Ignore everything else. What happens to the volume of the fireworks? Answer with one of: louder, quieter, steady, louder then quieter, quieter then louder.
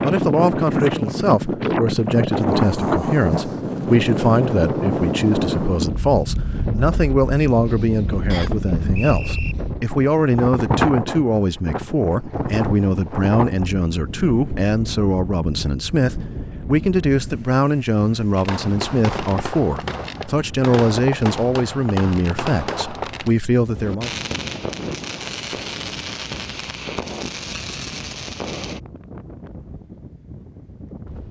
steady.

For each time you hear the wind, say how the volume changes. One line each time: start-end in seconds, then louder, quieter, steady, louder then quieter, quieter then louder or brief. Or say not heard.
0.0-31.2 quieter.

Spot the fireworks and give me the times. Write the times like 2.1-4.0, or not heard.
18.4-28.8.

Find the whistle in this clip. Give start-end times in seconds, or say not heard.
8.3-9.6.